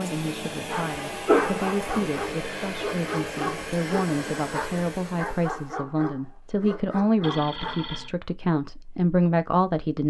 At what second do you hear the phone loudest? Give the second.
1 s.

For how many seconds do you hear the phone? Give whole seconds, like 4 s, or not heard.
2 s.